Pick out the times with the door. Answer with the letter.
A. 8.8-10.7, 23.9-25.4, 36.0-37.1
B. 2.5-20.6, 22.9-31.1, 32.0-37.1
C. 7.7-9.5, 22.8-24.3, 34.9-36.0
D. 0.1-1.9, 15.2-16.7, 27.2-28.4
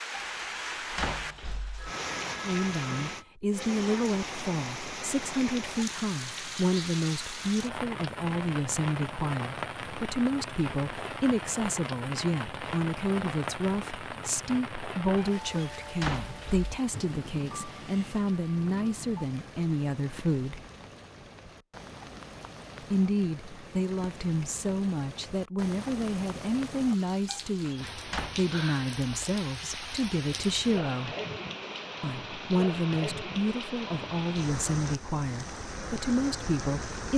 D.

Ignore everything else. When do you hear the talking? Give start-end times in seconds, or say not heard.
2.5-20.6, 22.9-31.1, 32.0-37.1.